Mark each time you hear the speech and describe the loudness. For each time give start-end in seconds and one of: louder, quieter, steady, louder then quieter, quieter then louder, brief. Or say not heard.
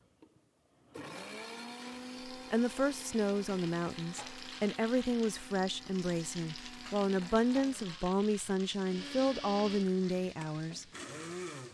2.3-10.8 steady.